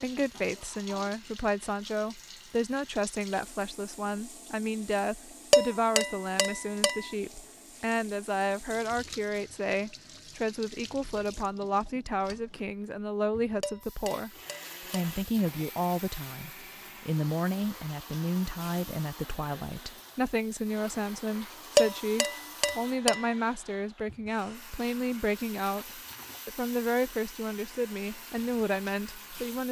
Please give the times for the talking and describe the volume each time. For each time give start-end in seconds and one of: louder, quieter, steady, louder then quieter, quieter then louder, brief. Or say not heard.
0.0-14.3 steady
14.9-29.6 steady.